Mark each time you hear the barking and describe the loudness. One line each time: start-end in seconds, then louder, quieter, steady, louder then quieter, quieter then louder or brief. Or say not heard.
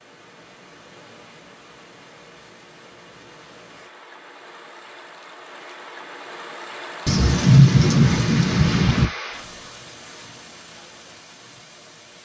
not heard.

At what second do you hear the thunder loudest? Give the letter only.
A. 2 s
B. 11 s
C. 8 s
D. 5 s
C.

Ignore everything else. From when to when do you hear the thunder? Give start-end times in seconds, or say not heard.
7.0-9.1.